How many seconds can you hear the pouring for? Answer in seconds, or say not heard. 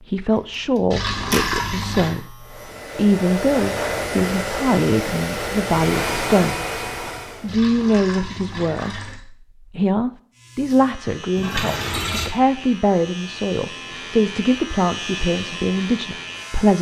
4 s.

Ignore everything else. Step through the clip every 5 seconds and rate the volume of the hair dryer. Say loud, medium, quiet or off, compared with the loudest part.
loud, loud, off, off.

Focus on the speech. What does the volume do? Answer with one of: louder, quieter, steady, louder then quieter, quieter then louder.
steady.